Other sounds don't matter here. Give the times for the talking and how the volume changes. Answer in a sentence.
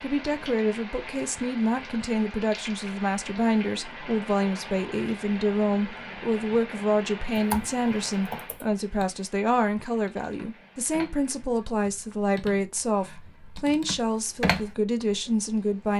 You can hear the talking from 0.0 to 15.9 s, at a steady volume.